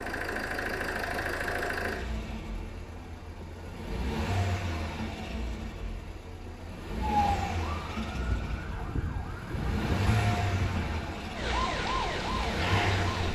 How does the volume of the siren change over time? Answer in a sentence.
The loudness of the siren goes up.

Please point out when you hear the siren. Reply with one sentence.
The siren can be heard from 7.0 to 13.3 s.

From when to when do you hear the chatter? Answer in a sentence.
The chatter can't be heard in this clip.